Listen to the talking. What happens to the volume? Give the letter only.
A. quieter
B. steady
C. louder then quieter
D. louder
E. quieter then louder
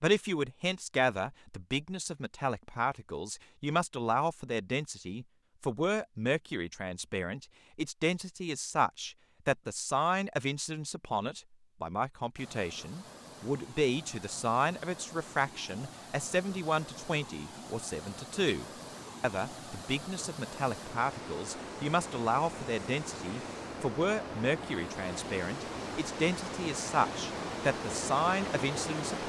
B.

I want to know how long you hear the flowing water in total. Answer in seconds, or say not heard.
17 s.